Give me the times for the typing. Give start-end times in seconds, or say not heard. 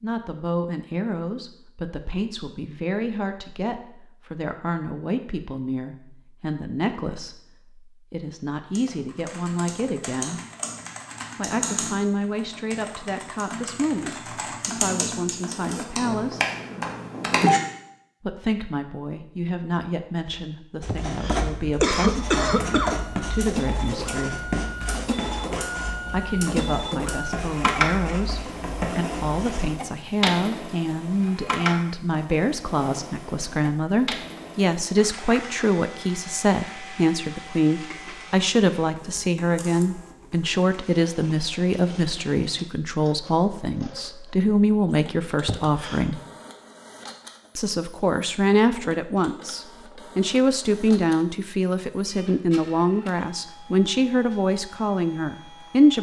8.7-17.6.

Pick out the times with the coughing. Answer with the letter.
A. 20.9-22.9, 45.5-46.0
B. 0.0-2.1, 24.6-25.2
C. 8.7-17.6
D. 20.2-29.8
A.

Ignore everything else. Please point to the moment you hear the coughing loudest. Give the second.
22 s.